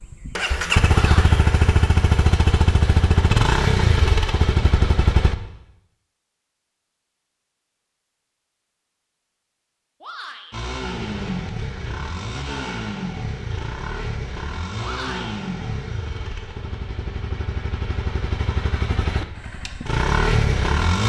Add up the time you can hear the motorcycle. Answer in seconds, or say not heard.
16 s.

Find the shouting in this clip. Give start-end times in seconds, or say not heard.
0.9-1.4, 10.0-10.6, 14.8-15.3.